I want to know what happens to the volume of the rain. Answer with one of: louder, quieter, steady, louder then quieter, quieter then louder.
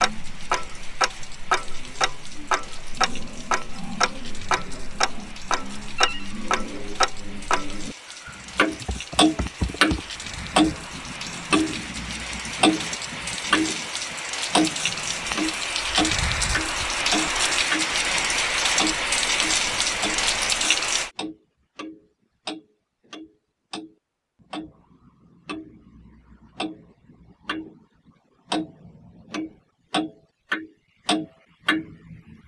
louder.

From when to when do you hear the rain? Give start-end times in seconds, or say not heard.
0.0-21.1.